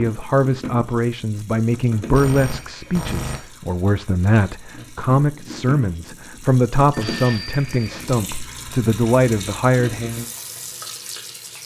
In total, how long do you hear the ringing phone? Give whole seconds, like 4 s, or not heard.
2 s.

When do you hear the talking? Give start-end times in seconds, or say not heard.
0.0-10.2.